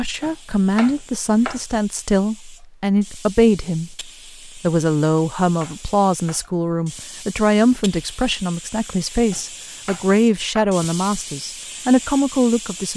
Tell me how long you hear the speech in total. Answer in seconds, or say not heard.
13 s.